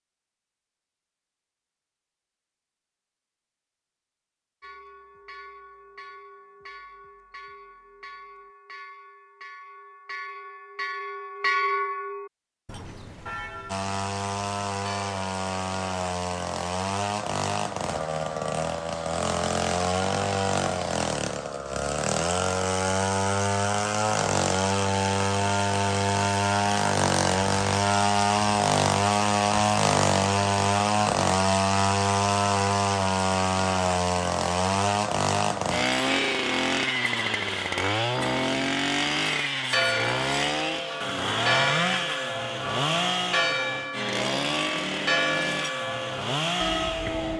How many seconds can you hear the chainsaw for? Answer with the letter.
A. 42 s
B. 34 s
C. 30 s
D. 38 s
B.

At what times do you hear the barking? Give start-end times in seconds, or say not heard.
not heard.